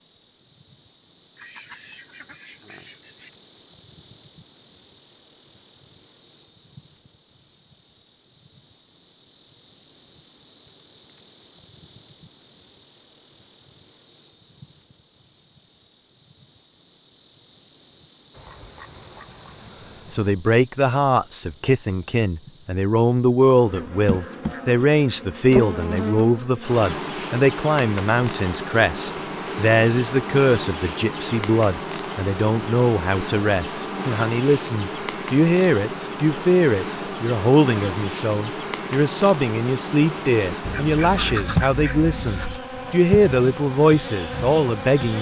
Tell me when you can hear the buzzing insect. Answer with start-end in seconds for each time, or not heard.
0.0-45.1.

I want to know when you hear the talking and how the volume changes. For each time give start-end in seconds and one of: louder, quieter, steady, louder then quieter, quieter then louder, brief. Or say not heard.
20.1-45.1 steady.